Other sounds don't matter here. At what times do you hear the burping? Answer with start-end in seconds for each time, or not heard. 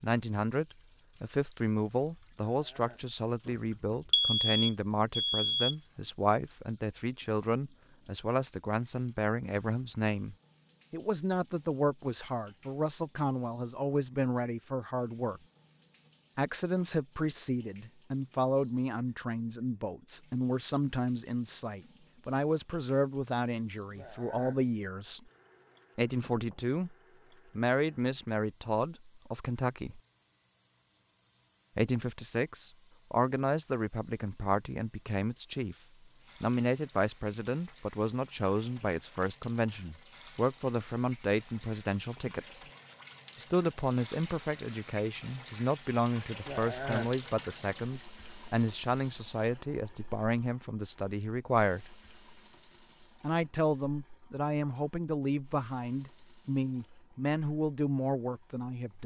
2.5-3.1, 23.9-24.6, 46.5-47.1.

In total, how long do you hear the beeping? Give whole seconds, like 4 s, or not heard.
2 s.